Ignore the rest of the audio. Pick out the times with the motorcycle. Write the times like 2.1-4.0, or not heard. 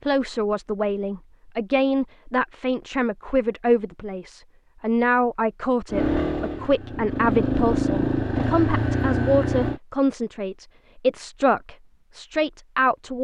5.9-9.8.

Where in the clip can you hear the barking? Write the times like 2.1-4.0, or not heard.
not heard.